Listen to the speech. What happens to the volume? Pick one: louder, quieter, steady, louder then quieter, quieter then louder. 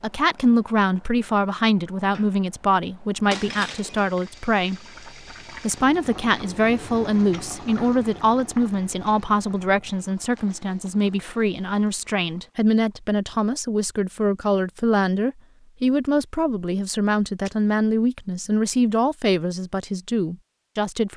steady.